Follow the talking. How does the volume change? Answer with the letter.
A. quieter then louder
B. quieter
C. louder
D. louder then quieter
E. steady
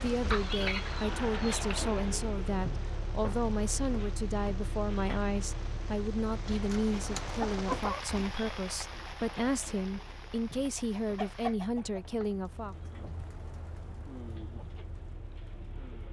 E.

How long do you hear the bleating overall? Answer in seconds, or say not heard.
not heard.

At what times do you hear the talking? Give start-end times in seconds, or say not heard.
0.0-12.8.